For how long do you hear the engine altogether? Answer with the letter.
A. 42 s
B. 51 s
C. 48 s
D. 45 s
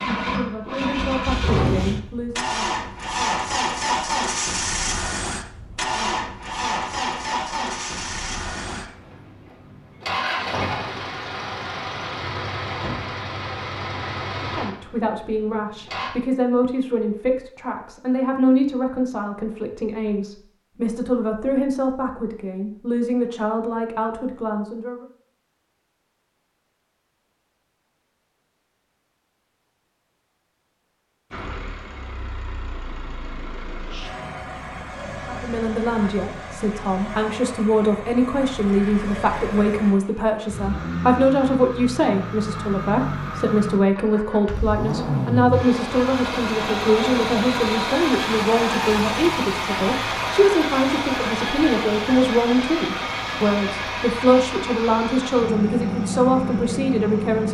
A.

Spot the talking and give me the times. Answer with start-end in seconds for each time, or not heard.
0.1-2.5, 14.3-25.1, 35.2-57.4.